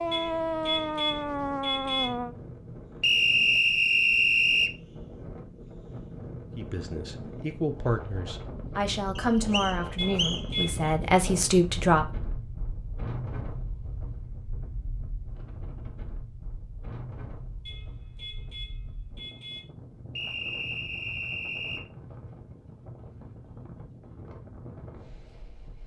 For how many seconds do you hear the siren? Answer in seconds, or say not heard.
2 s.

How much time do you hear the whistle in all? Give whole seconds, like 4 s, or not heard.
5 s.